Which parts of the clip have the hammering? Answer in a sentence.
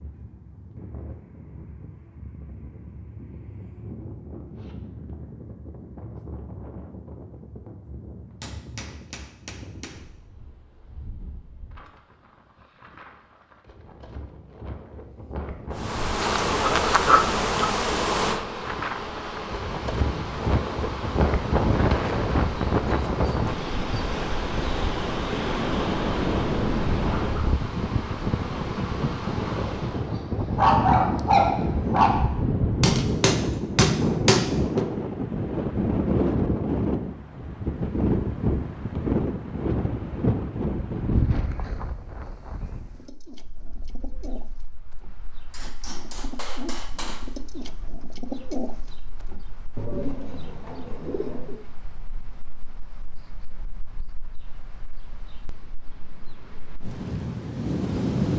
The hammering can be heard from 8.4 to 10.1 s, from 32.8 to 34.9 s and from 45.5 to 47.3 s.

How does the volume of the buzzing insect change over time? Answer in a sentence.
The loudness of the buzzing insect goes down.